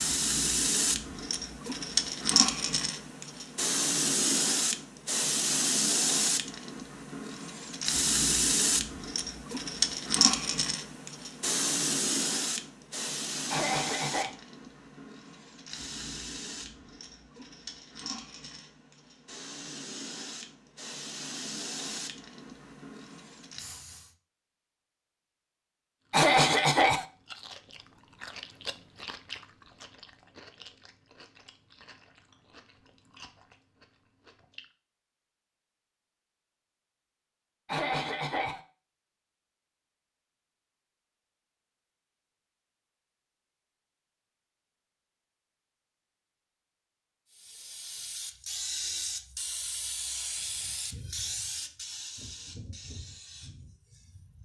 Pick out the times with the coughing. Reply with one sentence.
You can hear the coughing from 13.5 to 14.3 s, from 26.1 to 27.1 s and from 37.6 to 38.6 s.